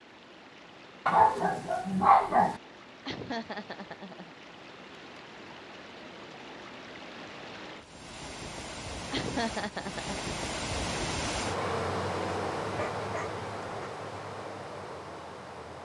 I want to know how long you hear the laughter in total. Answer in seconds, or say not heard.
2 s.